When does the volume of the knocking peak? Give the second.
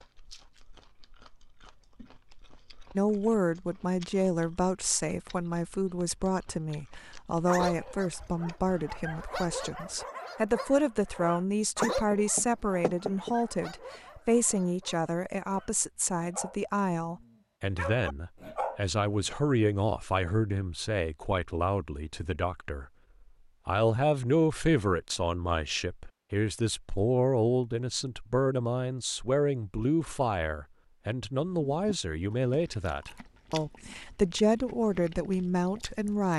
12 s.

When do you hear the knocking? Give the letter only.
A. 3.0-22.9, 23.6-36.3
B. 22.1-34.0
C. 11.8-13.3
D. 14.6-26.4
C.